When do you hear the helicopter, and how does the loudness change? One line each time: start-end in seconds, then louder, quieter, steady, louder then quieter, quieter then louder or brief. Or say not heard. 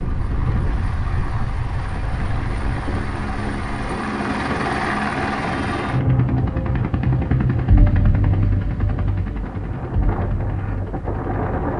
0.0-11.7 louder then quieter.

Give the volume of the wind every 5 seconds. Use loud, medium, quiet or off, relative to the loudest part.
loud, medium, loud.